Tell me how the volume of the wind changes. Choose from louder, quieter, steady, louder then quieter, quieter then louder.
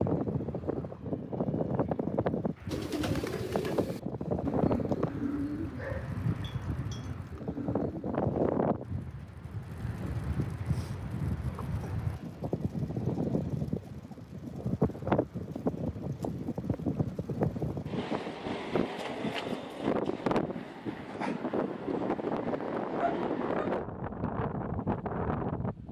steady.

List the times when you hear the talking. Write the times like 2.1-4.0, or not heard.
not heard.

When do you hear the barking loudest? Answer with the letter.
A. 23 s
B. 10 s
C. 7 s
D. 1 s
A.